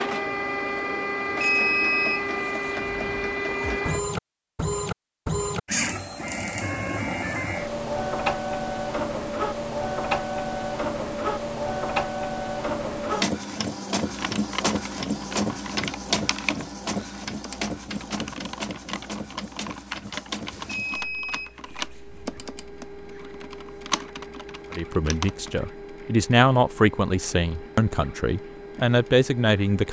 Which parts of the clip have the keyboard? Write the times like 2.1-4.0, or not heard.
14.1-25.6.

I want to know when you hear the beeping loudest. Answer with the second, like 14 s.
2 s.